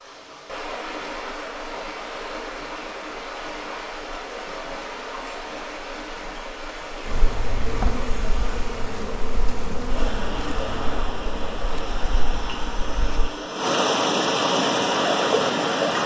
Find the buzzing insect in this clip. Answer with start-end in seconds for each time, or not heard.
7.0-13.3.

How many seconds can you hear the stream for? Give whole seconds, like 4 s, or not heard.
16 s.